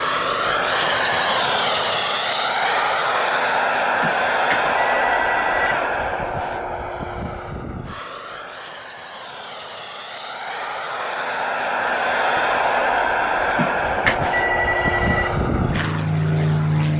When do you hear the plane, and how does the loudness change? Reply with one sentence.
You can hear the plane from 0.0 to 16.9 s, getting quieter then louder.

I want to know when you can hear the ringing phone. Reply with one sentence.
You can hear the ringing phone from 4.0 to 5.8 s and from 13.6 to 15.3 s.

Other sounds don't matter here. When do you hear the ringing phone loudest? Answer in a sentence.
The volume of the ringing phone peaks at 14 seconds.